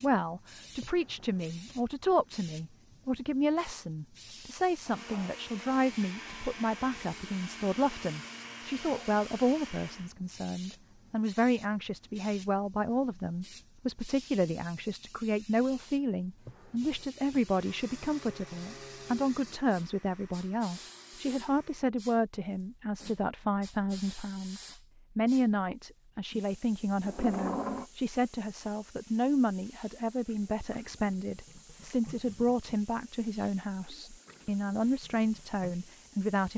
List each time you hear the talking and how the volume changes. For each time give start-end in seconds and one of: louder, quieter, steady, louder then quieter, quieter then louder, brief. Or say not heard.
0.0-36.5 steady.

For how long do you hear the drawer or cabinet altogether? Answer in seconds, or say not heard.
3 s.